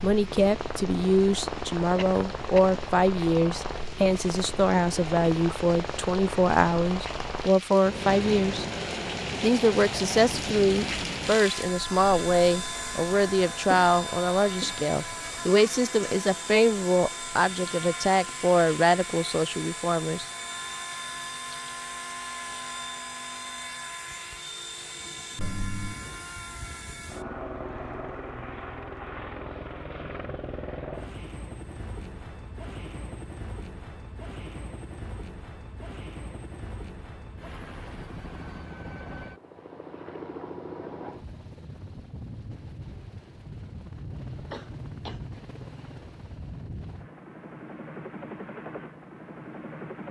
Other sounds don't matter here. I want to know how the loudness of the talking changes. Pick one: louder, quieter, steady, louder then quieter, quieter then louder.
steady.